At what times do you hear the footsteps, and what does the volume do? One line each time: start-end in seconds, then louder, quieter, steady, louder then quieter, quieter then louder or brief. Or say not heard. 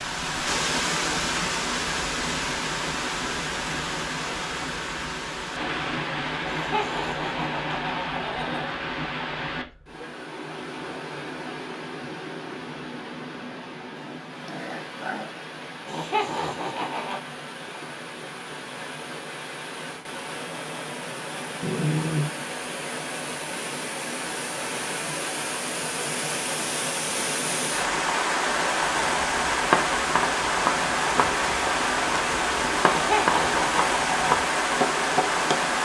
not heard.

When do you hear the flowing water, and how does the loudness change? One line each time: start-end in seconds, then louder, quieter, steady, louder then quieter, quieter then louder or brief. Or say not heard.
0.0-35.8 quieter then louder.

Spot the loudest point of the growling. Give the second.
22 s.